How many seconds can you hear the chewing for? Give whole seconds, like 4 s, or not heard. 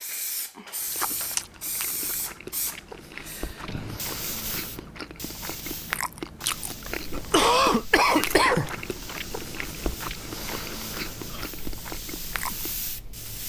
12 s.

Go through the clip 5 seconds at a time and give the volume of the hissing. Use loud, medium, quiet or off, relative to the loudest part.
loud, medium, loud.